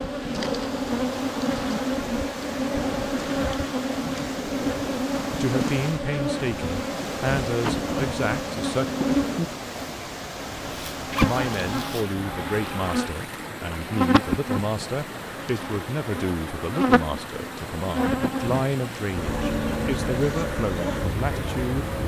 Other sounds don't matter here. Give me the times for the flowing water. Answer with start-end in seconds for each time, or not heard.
0.0-22.0.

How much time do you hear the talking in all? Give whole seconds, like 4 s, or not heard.
14 s.